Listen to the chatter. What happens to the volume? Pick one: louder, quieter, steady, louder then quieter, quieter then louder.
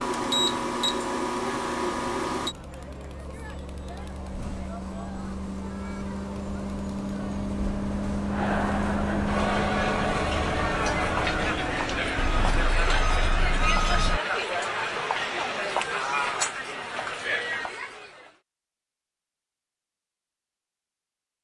louder.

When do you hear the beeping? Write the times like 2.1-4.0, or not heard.
0.0-2.5, 12.2-14.2.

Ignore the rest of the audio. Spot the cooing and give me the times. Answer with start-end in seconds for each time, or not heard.
not heard.